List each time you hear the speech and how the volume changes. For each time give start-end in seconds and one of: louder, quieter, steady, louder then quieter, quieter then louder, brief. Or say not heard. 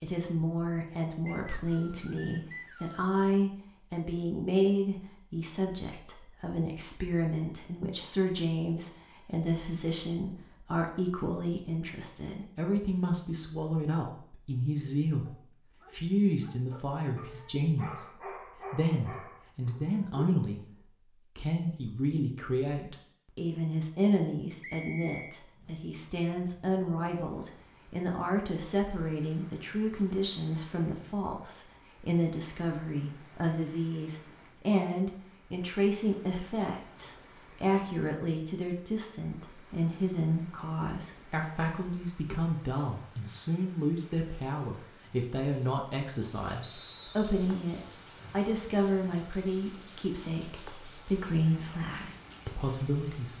0.0-20.6 steady
21.4-53.3 steady.